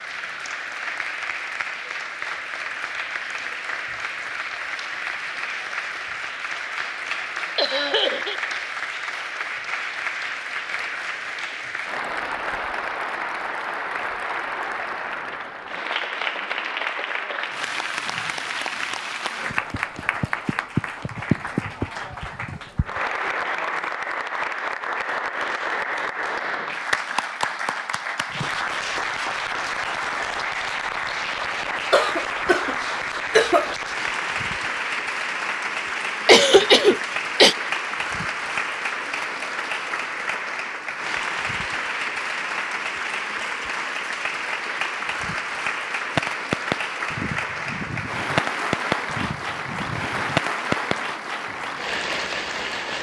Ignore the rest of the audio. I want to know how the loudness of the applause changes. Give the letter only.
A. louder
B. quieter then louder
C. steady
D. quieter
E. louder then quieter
C.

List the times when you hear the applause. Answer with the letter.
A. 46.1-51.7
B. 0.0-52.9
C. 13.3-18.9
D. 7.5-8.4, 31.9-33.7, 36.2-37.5
B.